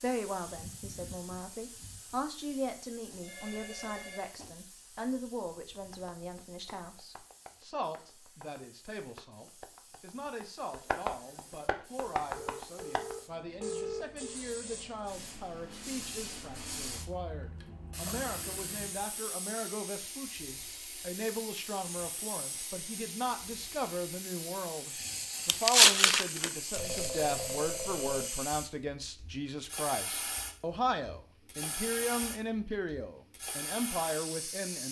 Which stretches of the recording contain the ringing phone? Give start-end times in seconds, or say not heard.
3.2-4.3, 12.3-14.4, 26.8-28.2.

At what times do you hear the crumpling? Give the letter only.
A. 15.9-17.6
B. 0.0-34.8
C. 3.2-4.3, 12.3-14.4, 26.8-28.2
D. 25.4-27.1
D.